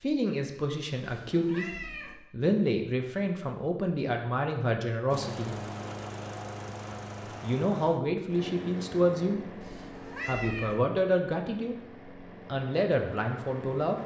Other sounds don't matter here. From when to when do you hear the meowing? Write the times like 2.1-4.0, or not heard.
0.9-2.1, 9.6-10.8.